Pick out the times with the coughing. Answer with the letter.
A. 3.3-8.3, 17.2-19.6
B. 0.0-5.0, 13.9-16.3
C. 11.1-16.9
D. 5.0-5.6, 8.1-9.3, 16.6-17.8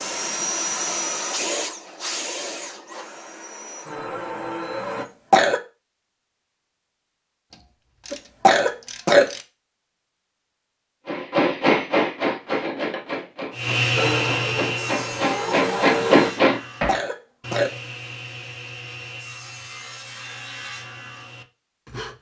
D.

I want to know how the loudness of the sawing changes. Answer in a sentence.
The volume of the sawing goes down.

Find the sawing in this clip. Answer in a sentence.
The sawing can be heard from 13.5 to 22.1 s.